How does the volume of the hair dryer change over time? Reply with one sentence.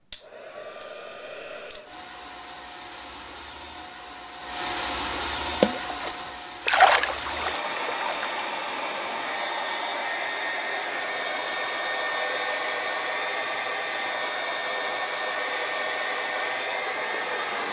The volume of the hair dryer goes up.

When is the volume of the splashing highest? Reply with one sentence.
The volume of the splashing peaks at 7 seconds.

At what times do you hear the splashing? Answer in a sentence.
You can hear the splashing from 5.5 to 8.4 s.